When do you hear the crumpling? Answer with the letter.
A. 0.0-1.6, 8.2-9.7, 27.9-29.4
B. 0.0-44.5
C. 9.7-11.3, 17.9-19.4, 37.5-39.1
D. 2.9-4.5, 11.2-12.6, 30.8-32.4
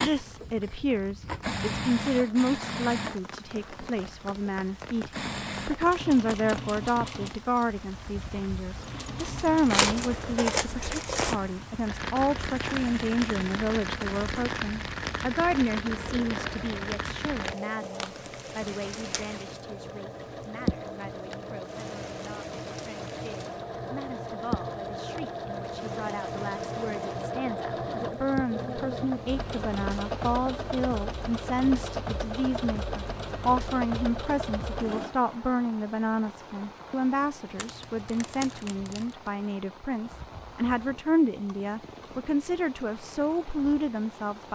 C.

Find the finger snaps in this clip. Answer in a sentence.
You can't hear the finger snaps here.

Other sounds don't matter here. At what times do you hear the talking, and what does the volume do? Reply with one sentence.
The talking can be heard from 0.0 to 44.5 s, getting quieter then louder.